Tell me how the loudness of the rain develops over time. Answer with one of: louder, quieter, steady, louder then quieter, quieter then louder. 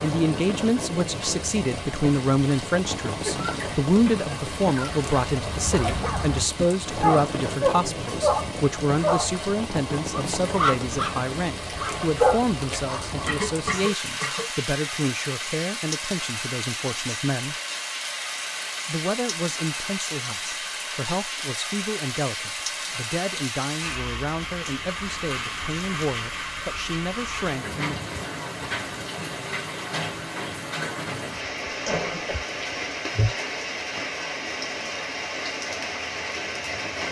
steady.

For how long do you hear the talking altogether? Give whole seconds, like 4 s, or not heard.
27 s.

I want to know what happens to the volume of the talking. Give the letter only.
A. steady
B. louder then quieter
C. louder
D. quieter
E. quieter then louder
D.